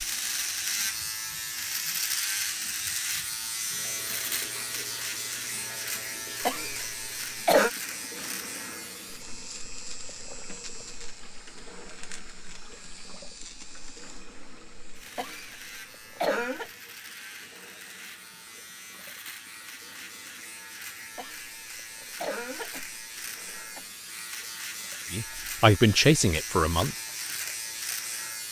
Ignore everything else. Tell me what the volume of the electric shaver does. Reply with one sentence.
The volume of the electric shaver goes down, then up.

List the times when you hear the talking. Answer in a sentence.
You can hear the talking from 25.1 to 26.9 s.